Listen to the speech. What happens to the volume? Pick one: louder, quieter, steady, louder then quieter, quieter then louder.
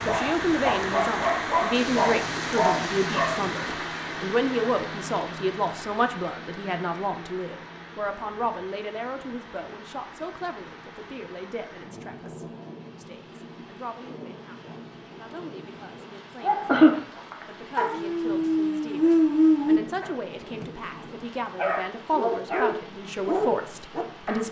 quieter then louder.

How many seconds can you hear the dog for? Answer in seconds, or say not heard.
12 s.